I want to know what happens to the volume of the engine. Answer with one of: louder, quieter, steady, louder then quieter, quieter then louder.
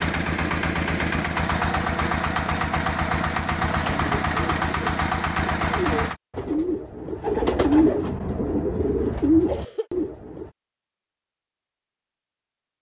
steady.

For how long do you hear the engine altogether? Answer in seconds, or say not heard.
6 s.